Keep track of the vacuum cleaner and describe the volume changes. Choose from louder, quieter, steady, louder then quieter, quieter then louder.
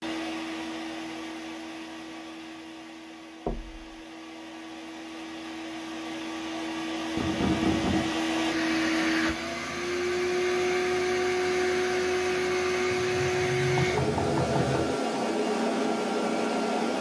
louder.